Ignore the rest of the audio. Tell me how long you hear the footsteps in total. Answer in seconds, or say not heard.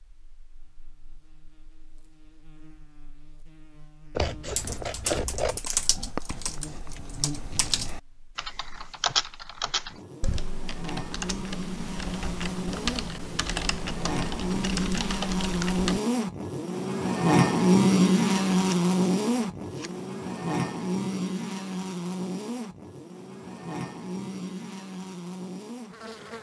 not heard.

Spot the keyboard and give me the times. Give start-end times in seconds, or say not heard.
4.5-16.0.